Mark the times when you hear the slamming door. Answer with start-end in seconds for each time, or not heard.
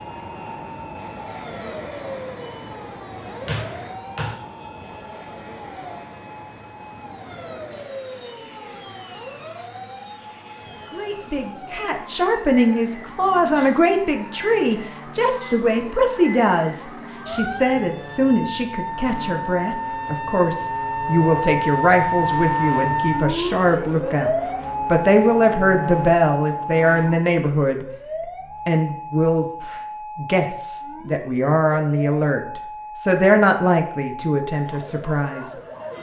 3.5-4.3.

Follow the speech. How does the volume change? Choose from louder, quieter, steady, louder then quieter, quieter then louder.
steady.